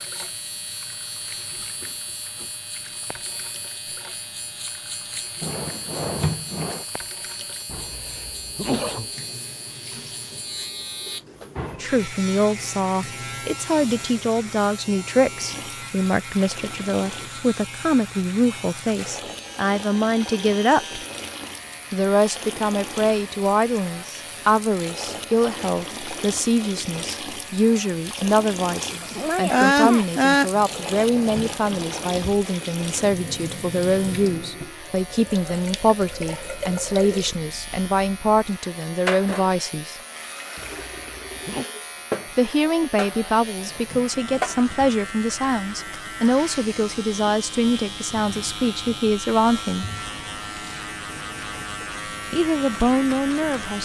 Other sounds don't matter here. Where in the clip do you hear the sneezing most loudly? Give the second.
30 s.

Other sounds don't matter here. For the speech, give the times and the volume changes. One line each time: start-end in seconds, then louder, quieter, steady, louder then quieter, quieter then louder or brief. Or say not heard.
11.8-21.0 steady
21.9-40.0 steady
42.4-49.9 steady
52.3-53.8 brief.